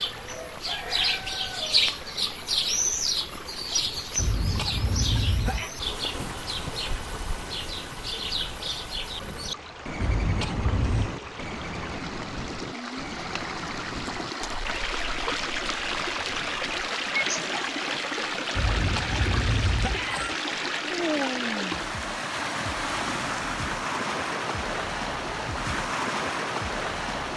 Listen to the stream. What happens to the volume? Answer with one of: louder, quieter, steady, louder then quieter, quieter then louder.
louder.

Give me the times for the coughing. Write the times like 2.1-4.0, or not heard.
4.2-5.7, 10.0-11.2, 18.6-20.4.